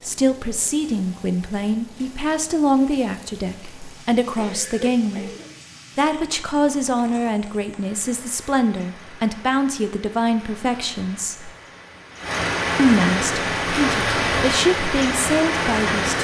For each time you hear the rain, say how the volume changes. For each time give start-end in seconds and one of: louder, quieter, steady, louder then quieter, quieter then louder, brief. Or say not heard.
0.0-16.1 louder.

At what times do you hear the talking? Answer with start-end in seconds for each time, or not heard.
0.0-5.3, 6.0-11.5, 12.8-16.1.